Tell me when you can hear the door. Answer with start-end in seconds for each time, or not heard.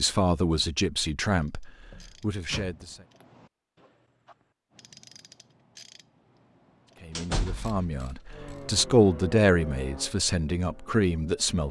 1.9-2.8, 7.2-7.8.